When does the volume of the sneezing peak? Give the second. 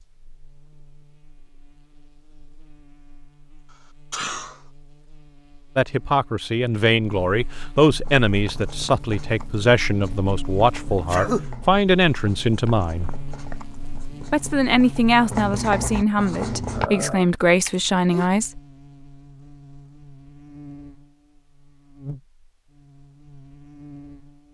11 s.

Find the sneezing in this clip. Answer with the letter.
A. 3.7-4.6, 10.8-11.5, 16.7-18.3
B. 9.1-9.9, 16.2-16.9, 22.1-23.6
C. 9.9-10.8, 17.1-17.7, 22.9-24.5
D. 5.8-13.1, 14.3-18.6
A.